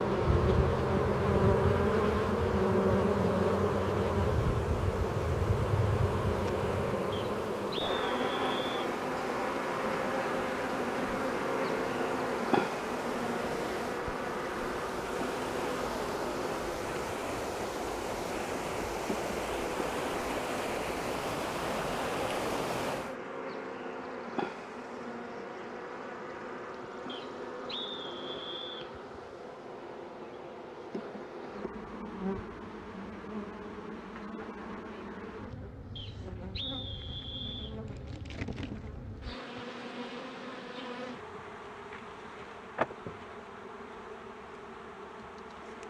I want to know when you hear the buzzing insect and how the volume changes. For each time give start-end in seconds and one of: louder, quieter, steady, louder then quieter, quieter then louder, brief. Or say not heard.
0.0-45.8 quieter.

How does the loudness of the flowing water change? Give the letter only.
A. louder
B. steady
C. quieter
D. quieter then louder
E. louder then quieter
A.